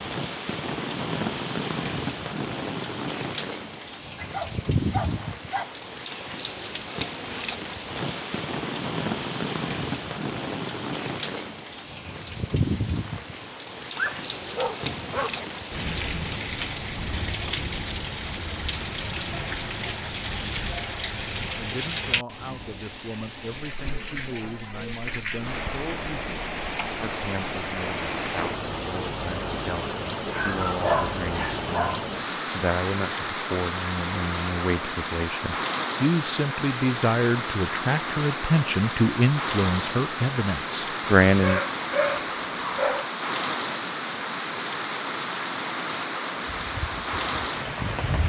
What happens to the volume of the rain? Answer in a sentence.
The loudness of the rain stays about the same.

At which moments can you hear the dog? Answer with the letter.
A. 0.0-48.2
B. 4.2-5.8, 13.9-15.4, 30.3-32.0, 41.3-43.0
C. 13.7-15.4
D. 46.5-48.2
B.